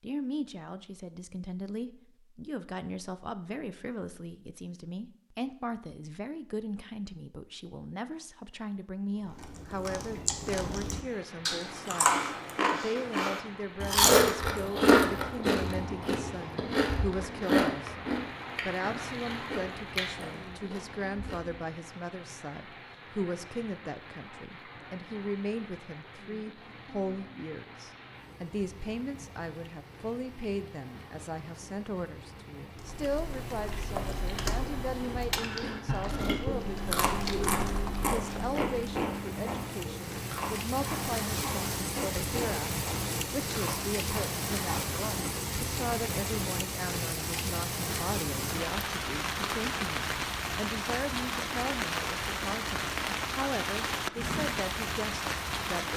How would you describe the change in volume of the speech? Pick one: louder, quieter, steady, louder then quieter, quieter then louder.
steady.